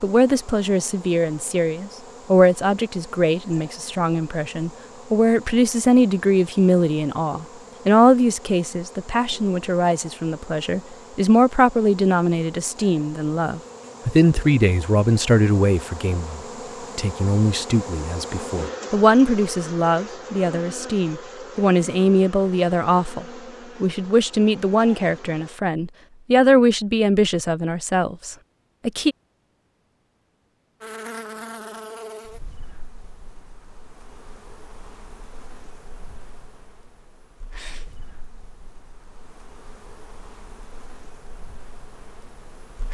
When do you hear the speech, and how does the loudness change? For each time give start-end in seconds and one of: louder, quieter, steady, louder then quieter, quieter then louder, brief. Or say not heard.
0.0-29.1 steady.